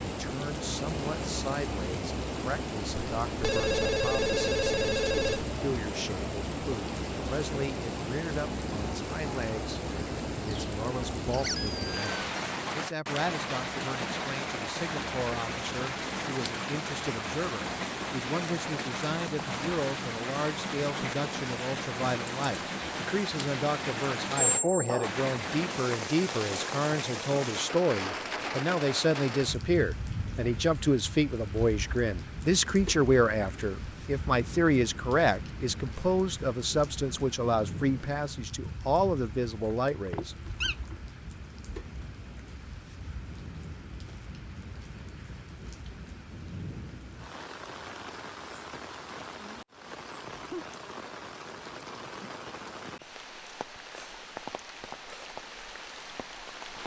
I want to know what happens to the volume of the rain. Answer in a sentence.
The volume of the rain goes down.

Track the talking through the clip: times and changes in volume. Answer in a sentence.
The talking can be heard from 0.0 to 40.4 s, getting louder.